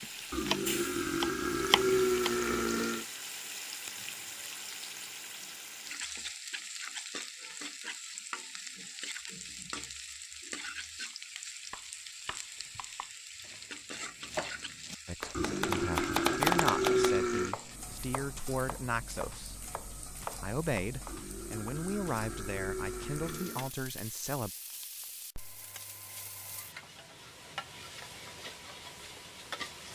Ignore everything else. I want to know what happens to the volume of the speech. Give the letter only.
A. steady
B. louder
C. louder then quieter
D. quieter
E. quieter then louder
A.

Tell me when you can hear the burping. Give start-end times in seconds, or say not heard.
0.3-3.0, 15.3-17.6, 21.1-23.7.